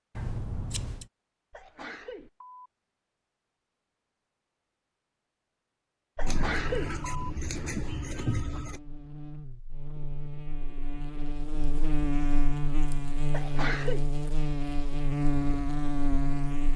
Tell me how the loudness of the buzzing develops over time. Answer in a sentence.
The loudness of the buzzing goes up.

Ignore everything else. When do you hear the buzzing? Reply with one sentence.
You can hear the buzzing from 6.2 to 16.7 s.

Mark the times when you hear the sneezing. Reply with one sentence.
You can hear the sneezing from 1.5 to 2.7 s, from 6.2 to 7.0 s and from 13.3 to 14.1 s.